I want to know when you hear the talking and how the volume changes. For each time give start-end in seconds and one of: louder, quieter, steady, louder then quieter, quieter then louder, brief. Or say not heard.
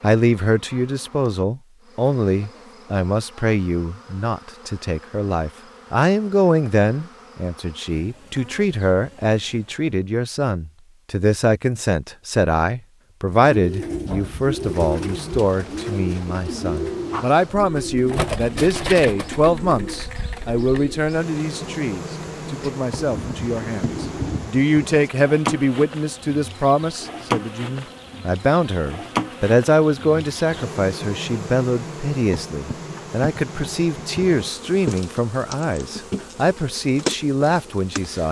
0.0-38.2 steady.